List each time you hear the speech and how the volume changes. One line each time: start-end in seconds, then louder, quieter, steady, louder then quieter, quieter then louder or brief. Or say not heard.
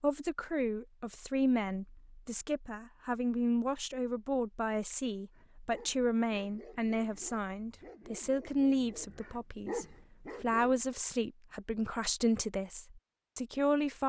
0.0-14.0 steady.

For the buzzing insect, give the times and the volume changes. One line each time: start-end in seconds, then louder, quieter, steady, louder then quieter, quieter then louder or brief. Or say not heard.
not heard.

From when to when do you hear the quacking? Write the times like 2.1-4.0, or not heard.
not heard.